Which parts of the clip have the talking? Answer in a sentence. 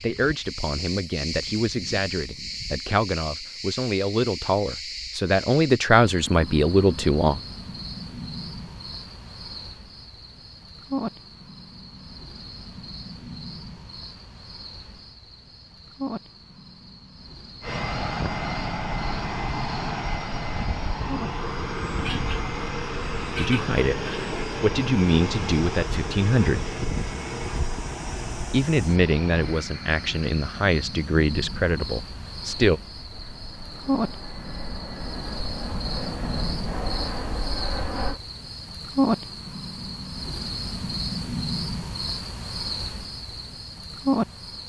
The talking can be heard from 0.0 to 7.4 s, from 23.3 to 26.6 s and from 28.5 to 32.8 s.